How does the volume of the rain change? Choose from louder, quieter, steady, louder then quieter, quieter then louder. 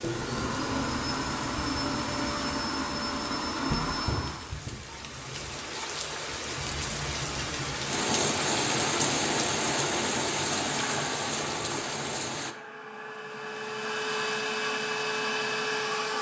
louder.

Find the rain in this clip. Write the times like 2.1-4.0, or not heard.
0.0-12.6.